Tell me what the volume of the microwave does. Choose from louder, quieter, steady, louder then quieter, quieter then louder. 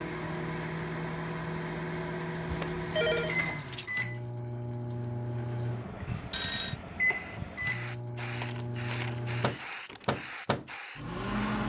steady.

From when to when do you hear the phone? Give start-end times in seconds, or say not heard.
2.5-3.4, 6.0-6.8.